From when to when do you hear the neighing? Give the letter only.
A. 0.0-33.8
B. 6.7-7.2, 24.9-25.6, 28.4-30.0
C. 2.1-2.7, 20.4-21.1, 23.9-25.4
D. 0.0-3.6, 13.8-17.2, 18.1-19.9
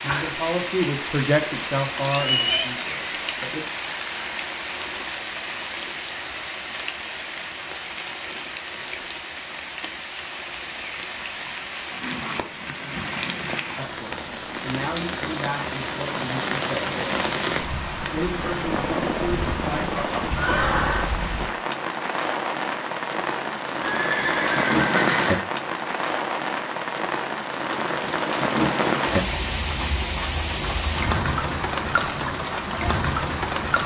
C.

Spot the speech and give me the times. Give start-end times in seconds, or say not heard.
0.0-3.6, 13.8-17.2, 18.1-19.9.